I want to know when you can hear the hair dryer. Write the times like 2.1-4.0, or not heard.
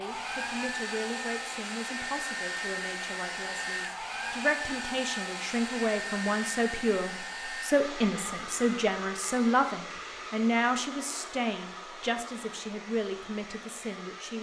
0.0-14.3.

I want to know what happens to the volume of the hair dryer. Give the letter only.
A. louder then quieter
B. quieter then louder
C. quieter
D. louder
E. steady
C.